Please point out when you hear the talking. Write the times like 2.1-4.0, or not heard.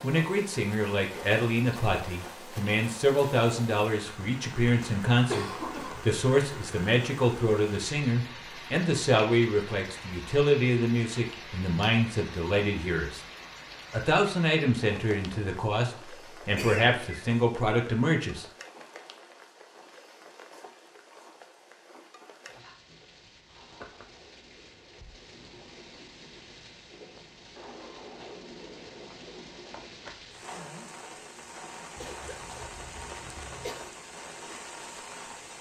0.0-13.2, 13.9-18.4.